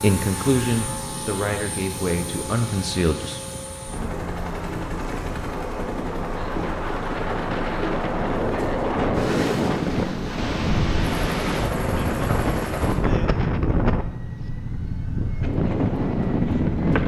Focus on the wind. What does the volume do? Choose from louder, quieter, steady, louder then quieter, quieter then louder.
louder.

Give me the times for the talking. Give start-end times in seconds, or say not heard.
0.0-3.4.